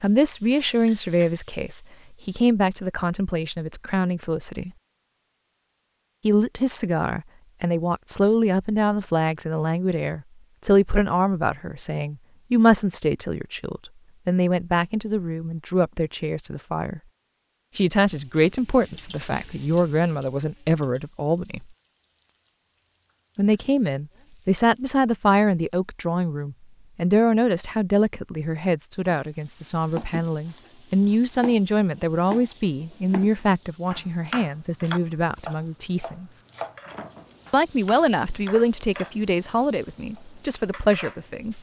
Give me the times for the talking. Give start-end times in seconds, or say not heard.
0.0-4.7, 6.2-17.0, 17.8-21.6, 23.4-36.4, 37.5-41.5.